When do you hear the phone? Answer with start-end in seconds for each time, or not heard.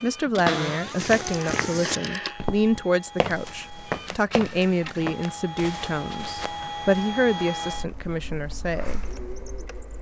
1.1-2.5.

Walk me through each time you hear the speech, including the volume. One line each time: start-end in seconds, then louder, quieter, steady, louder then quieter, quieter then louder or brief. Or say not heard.
0.0-9.0 steady.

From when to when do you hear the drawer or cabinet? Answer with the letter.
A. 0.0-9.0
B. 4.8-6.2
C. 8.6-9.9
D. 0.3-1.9
D.